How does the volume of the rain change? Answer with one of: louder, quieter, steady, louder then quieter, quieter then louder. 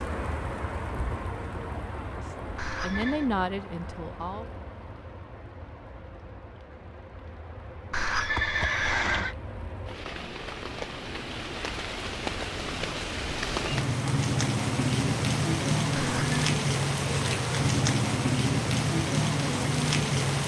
quieter then louder.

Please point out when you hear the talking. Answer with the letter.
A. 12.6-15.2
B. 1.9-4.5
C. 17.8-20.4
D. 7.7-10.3
B.